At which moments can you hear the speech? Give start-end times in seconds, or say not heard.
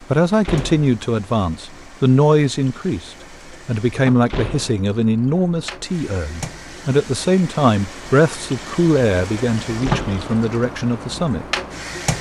0.1-11.4.